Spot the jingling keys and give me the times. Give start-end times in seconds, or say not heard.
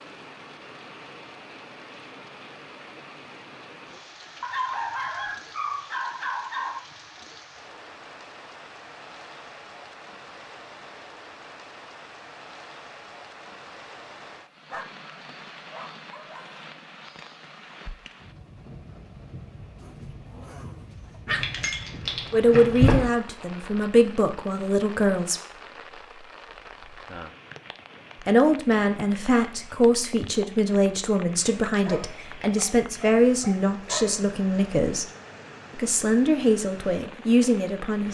21.3-23.1.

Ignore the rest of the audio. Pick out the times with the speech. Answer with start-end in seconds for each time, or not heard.
22.3-25.4, 28.2-35.0, 35.8-38.0.